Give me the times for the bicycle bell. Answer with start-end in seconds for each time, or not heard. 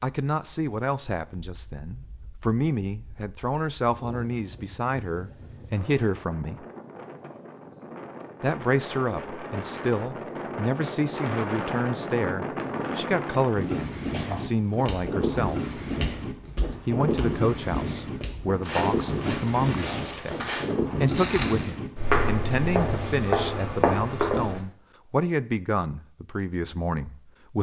not heard.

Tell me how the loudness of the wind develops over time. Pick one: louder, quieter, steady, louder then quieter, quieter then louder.
louder.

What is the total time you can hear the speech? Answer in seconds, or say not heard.
24 s.